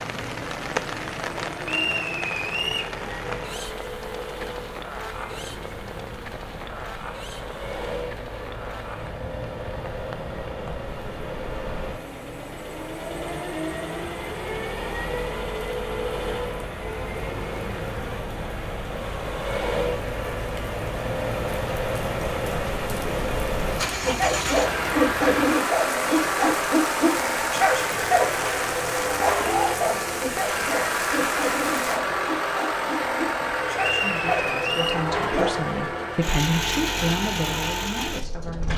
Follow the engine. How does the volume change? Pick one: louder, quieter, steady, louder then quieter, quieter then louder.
louder.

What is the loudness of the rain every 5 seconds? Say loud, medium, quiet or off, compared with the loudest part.
loud, medium, medium, medium, loud, loud, loud, off.